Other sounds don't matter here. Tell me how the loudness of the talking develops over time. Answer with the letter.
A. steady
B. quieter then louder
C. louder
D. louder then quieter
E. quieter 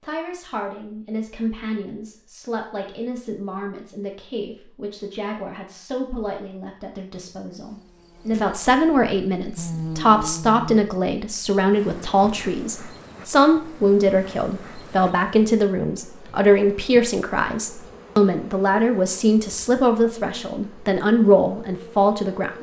C.